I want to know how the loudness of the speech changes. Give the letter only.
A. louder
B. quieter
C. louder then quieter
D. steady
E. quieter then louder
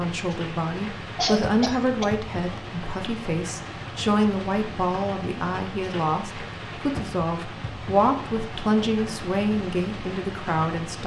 D.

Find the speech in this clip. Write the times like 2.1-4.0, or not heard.
0.0-11.0.